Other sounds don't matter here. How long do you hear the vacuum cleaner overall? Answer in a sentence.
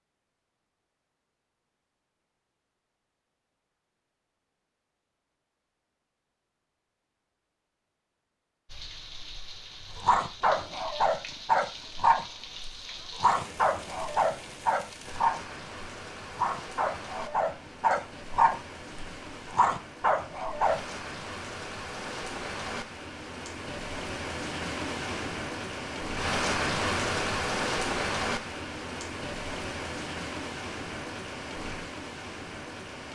The vacuum cleaner can't be heard in this clip.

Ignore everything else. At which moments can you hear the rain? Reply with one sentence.
The rain can be heard from 8.7 to 33.1 s.